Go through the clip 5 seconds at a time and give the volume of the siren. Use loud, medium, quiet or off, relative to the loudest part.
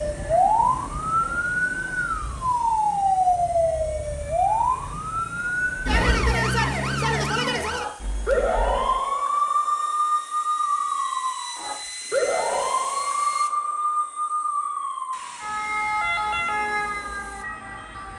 loud, loud, loud, medium.